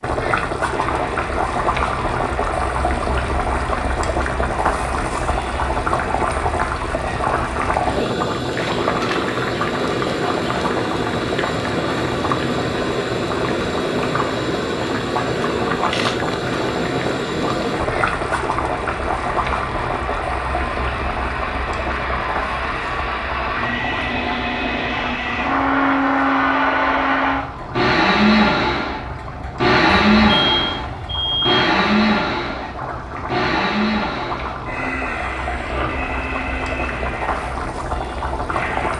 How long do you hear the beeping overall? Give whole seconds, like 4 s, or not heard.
2 s.